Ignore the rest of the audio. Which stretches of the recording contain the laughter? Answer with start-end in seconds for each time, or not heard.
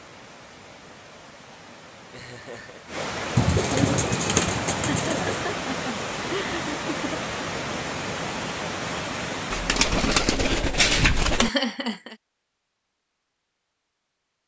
2.1-2.9, 4.8-7.2, 11.4-12.2.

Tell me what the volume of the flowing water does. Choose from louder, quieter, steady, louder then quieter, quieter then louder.
louder.